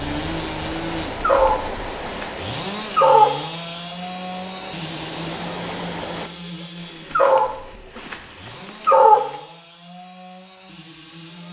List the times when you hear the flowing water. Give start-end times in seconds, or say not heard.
0.0-6.3.